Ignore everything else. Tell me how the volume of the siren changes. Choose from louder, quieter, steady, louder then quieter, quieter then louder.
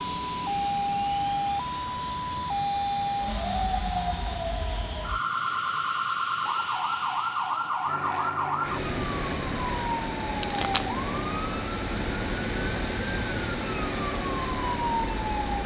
steady.